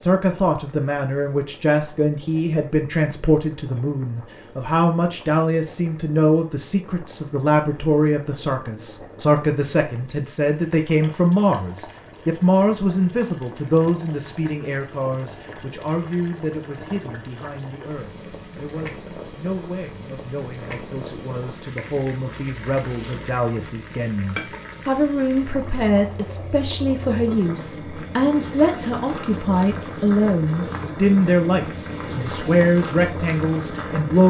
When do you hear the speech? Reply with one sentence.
The speech can be heard from 0.0 to 34.2 s.